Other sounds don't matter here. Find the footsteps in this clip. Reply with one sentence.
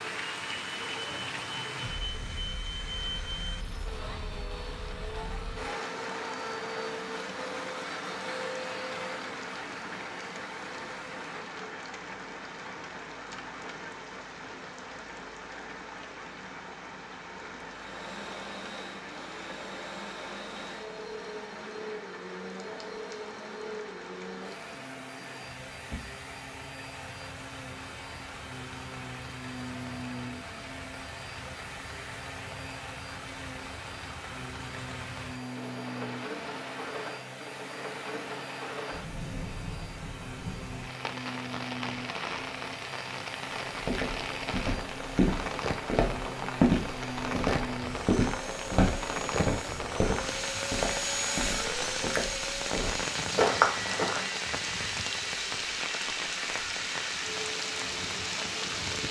The footsteps can be heard from 43.8 to 54.4 s.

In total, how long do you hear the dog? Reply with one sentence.
The dog can't be heard in this clip.